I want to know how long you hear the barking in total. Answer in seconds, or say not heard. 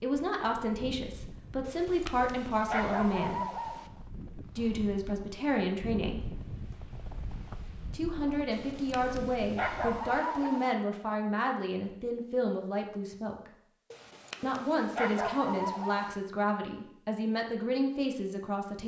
7 s.